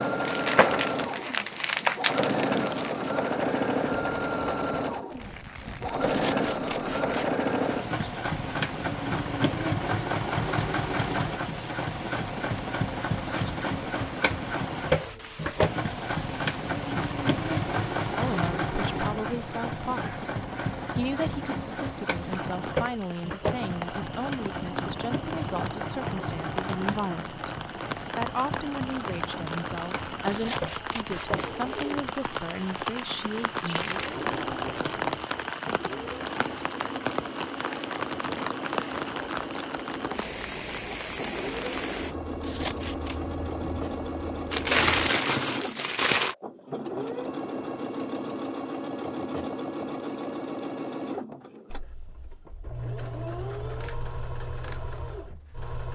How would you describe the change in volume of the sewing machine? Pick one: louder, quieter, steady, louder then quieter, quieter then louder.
quieter.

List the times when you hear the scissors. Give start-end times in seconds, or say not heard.
6.0-7.3, 30.2-31.5, 42.4-43.1.